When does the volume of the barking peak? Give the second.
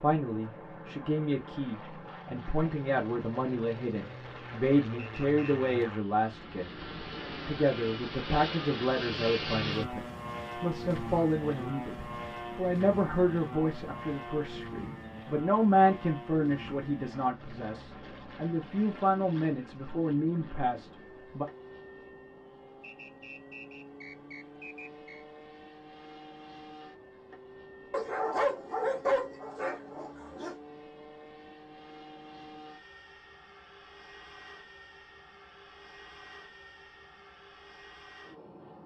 29 s.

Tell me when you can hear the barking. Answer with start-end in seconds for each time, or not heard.
27.9-30.6.